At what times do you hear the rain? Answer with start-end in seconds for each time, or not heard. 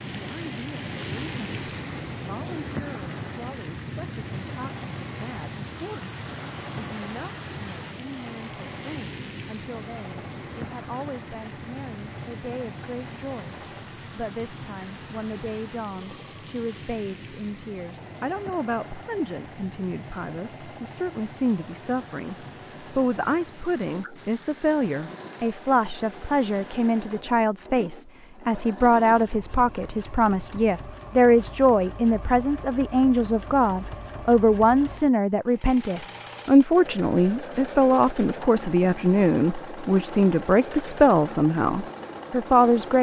0.0-27.2.